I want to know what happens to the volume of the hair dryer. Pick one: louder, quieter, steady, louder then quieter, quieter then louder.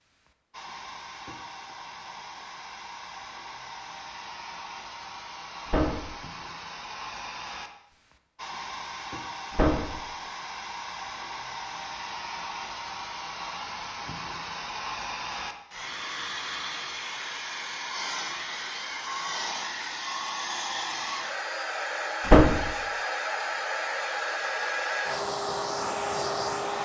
louder.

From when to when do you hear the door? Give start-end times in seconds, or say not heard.
5.7-6.1, 9.5-9.9, 22.2-22.7.